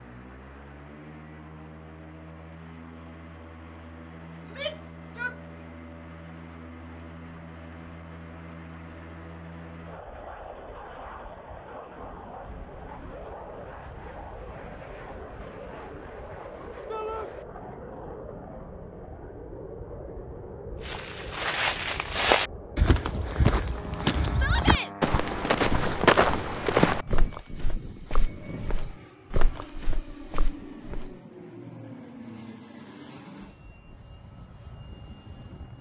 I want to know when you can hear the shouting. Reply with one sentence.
You can hear the shouting from 4.4 to 5.3 s, from 16.9 to 17.3 s and from 24.3 to 24.9 s.